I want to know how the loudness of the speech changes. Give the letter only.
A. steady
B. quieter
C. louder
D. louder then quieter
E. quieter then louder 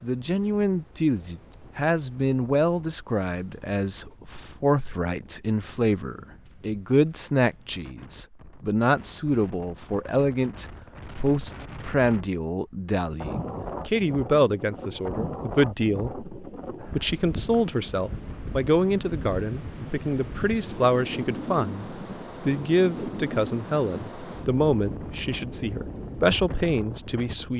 A.